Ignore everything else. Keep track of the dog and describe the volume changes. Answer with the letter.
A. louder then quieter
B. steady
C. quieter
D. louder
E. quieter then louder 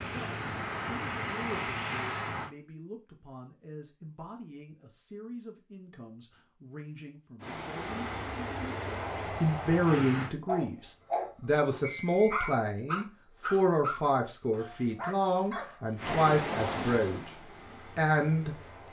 C.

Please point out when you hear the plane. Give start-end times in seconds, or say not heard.
0.0-2.5, 7.4-10.3, 15.9-18.8.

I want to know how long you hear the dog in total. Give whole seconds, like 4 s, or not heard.
6 s.